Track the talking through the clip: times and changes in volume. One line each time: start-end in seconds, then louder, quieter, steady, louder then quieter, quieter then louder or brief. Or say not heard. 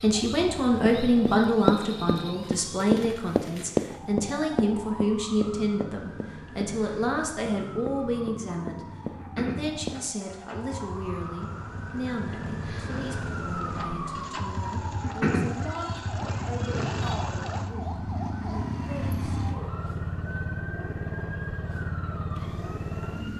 0.0-19.7 quieter.